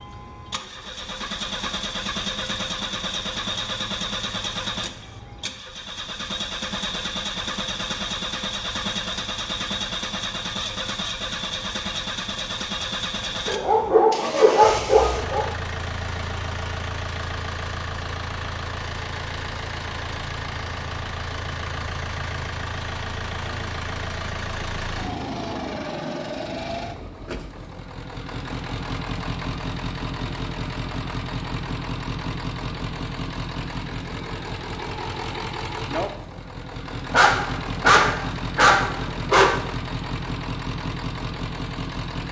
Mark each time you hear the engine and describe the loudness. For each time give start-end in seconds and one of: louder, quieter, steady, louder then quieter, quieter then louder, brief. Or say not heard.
0.0-42.2 steady.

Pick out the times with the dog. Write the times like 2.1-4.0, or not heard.
13.4-15.4, 37.1-39.5.